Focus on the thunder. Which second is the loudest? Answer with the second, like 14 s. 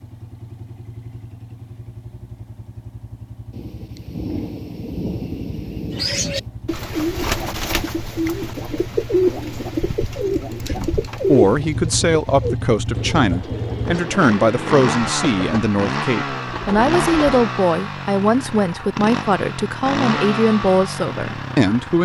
5 s.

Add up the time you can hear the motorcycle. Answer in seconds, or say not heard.
22 s.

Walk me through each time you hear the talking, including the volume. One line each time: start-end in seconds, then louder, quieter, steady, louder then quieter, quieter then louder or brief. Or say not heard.
10.7-22.0 steady.